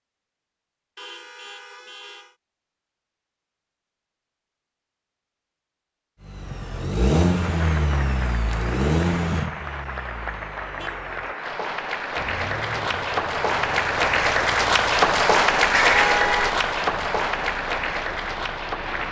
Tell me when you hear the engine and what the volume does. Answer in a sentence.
The engine can be heard from 6.2 to 19.0 s, getting quieter.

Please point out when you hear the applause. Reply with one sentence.
You can hear the applause from 7.4 to 19.0 s.